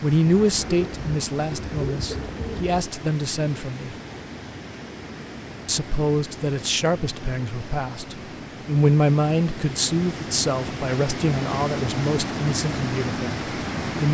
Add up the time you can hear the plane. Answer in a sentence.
You can't hear the plane here.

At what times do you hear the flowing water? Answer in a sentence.
The flowing water can be heard from 0.0 to 14.0 s.